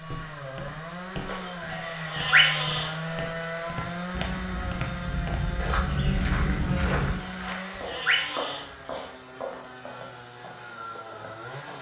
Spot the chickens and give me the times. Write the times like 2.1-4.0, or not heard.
not heard.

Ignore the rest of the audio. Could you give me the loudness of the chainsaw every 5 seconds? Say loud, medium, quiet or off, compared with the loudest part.
loud, loud, medium.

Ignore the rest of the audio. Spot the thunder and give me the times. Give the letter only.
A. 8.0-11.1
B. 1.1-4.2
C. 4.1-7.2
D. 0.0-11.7
C.